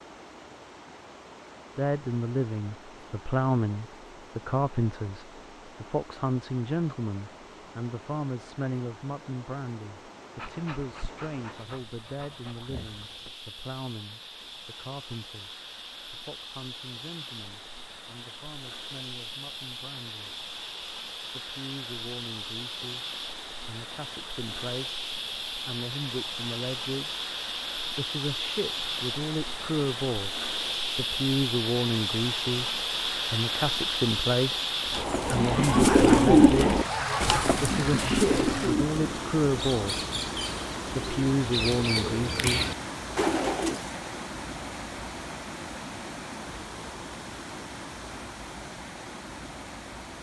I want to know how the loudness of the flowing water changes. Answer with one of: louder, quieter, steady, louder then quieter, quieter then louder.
louder then quieter.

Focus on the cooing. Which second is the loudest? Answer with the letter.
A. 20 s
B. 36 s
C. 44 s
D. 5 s
B.